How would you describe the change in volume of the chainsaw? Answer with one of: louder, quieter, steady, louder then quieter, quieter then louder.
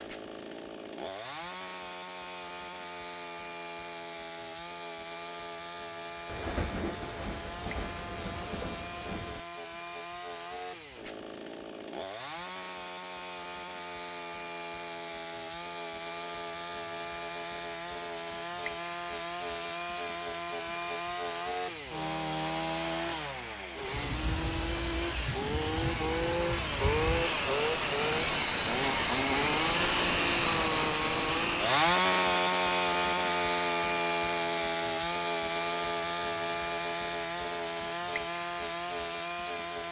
louder.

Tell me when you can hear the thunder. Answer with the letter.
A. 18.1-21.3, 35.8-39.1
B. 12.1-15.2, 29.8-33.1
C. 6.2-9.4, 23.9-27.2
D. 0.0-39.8
C.